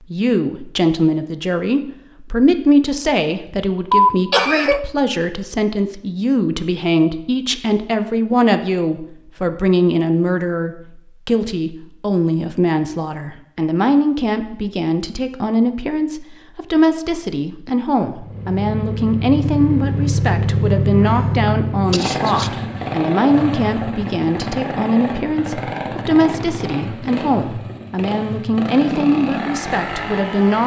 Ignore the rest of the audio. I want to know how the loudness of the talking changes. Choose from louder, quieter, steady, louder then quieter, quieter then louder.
steady.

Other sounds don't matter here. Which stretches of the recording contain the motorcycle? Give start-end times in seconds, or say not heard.
18.1-30.6.